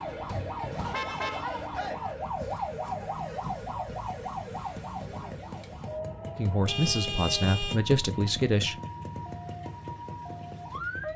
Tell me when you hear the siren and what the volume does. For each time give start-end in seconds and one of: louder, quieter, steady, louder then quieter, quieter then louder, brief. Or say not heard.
0.0-11.1 quieter.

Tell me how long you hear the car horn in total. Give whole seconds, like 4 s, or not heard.
2 s.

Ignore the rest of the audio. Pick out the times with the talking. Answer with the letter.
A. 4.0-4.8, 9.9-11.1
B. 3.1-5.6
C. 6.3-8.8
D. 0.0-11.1
C.